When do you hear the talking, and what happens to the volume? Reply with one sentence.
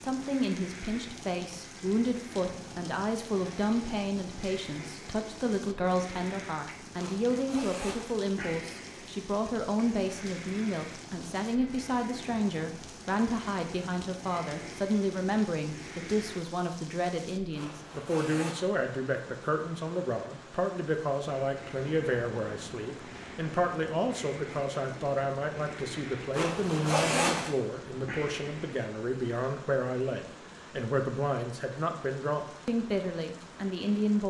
You can hear the talking from 0.0 to 34.2 s, at a steady volume.